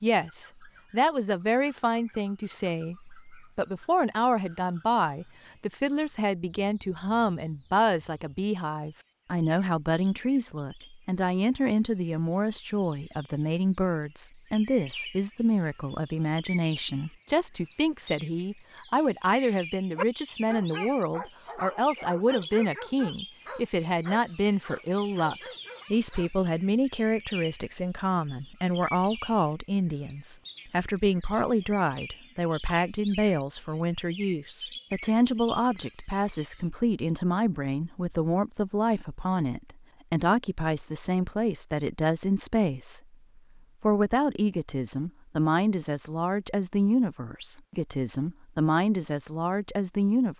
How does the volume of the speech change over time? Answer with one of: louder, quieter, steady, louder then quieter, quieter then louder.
steady.